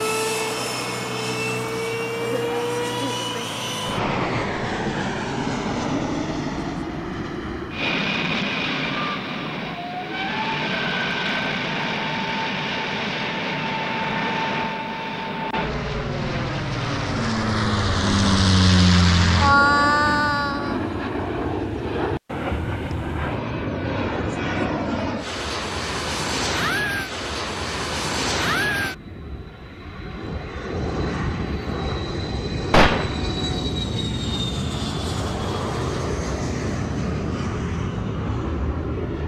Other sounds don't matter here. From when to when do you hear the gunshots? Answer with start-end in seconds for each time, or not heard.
32.7-33.2.